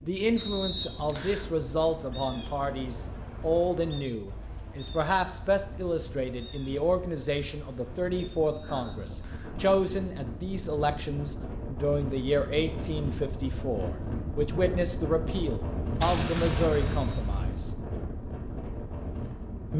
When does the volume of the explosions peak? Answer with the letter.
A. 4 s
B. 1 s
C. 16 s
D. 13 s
C.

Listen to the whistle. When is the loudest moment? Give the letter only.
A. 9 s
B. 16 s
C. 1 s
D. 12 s
C.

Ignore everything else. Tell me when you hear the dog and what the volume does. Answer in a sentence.
The dog can't be heard in this clip.